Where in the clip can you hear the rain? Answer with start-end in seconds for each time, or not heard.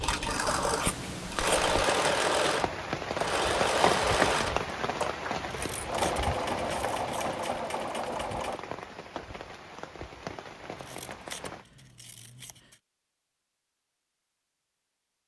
0.0-11.7.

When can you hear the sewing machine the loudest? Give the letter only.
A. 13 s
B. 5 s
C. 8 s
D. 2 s
D.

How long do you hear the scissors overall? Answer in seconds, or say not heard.
5 s.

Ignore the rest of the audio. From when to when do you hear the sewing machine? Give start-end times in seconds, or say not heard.
0.0-8.6.